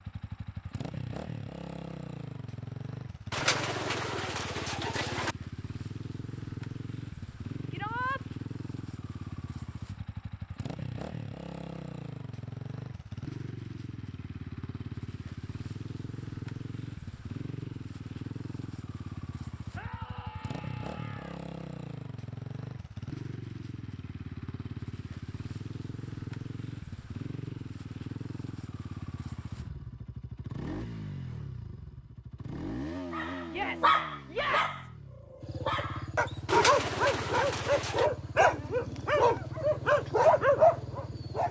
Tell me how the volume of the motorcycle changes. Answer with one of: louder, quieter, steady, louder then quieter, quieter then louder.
steady.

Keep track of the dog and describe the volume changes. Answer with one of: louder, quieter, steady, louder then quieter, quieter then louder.
quieter then louder.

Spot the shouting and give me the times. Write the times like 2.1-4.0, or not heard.
7.7-8.2, 19.8-21.4, 33.5-34.9.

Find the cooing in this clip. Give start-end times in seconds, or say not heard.
3.3-5.3, 36.5-38.1.